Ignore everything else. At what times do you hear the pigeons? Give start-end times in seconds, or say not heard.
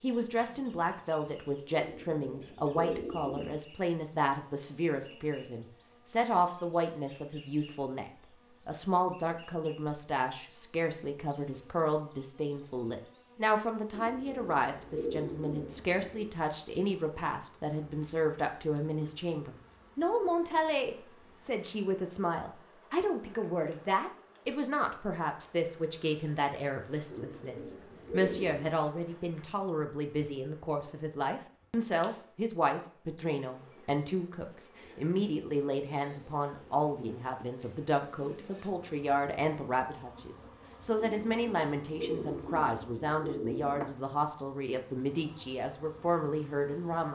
1.8-3.6, 13.9-16.3, 27.1-28.8, 41.0-43.9.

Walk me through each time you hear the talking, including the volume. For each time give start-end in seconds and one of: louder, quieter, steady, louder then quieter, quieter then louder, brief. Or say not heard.
0.0-47.1 steady.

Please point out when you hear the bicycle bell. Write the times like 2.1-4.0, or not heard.
not heard.